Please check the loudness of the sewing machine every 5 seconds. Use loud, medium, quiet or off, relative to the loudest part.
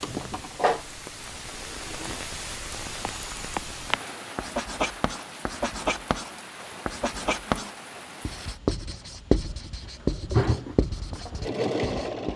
medium, off, loud.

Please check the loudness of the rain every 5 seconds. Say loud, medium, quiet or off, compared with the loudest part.
loud, loud, off.